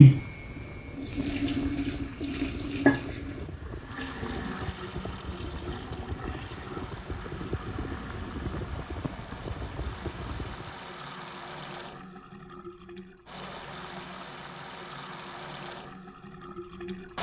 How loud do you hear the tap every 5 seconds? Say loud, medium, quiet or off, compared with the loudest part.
loud, quiet, quiet, quiet.